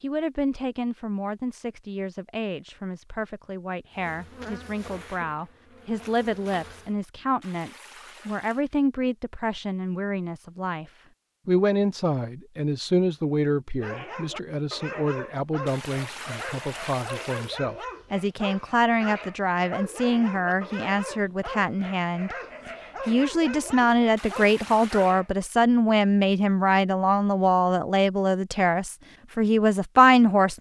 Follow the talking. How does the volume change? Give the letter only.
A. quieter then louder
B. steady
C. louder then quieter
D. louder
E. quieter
D.